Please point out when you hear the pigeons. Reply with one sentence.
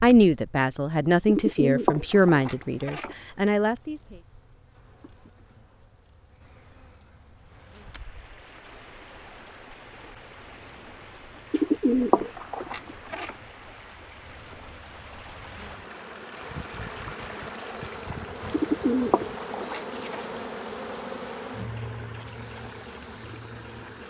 The pigeons can be heard from 1.2 to 3.1 s, from 11.5 to 13.3 s and from 18.5 to 20.2 s.